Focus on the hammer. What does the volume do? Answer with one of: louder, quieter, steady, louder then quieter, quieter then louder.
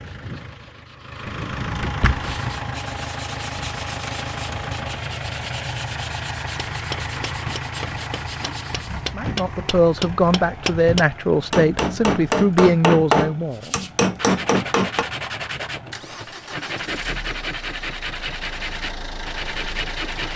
louder.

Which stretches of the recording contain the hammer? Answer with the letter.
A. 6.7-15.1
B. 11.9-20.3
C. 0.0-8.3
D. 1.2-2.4
A.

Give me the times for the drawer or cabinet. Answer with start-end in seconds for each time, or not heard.
1.2-2.4.